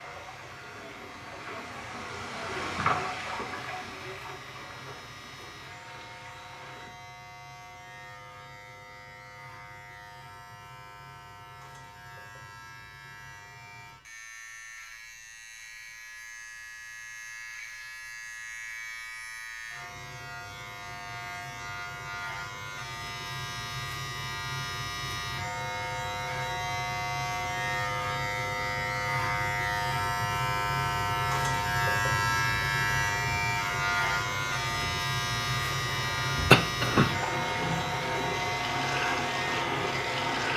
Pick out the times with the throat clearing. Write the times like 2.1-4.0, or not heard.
36.5-37.1.